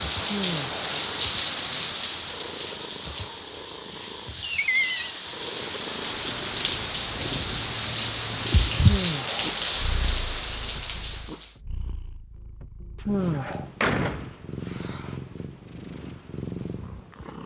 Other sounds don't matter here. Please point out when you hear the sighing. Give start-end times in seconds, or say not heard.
0.2-0.8, 8.8-9.6, 13.1-13.7.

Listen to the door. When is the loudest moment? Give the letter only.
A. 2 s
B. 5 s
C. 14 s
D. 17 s
B.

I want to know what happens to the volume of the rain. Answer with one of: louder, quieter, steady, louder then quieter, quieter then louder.
quieter then louder.